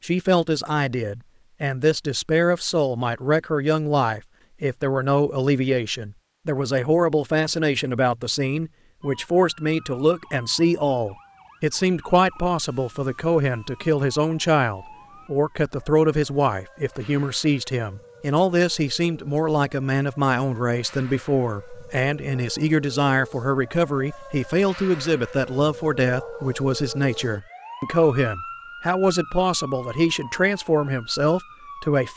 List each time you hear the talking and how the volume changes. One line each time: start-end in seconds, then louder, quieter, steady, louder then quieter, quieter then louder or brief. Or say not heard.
0.0-32.1 steady.